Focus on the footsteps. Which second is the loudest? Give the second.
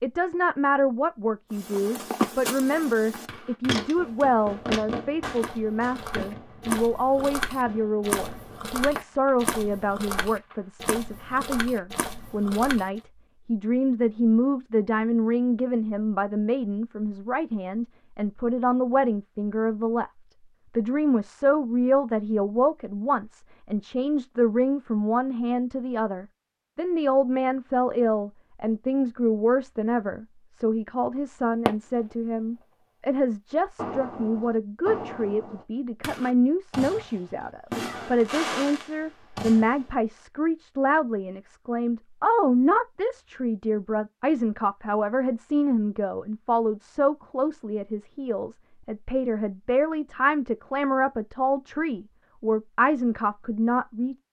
2 s.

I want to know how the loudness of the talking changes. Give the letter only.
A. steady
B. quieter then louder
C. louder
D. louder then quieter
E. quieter
A.